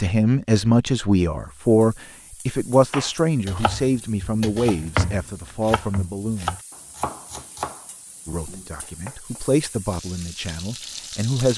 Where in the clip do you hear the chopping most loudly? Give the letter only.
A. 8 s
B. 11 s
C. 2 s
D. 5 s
D.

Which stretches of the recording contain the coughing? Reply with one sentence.
The coughing can't be heard in this clip.